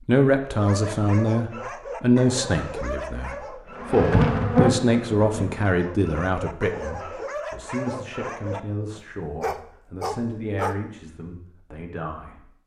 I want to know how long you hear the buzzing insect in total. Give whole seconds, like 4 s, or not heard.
2 s.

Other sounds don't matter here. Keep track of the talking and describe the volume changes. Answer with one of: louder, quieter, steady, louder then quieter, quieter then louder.
quieter.